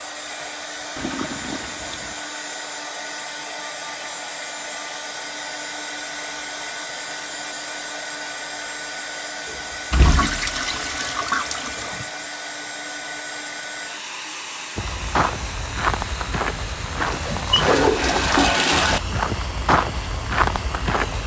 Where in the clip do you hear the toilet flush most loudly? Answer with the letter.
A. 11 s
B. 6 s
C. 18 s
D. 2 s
C.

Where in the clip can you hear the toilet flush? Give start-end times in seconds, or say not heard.
0.9-2.2, 10.0-12.1, 17.0-19.0.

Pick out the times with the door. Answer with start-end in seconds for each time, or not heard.
9.4-10.8.